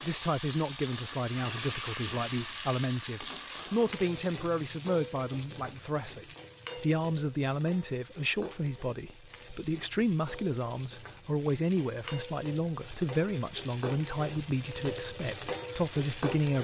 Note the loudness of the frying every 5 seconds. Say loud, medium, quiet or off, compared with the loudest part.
loud, medium, medium, loud.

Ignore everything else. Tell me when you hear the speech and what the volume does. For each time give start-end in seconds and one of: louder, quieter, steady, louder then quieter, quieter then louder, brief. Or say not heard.
0.0-16.5 steady.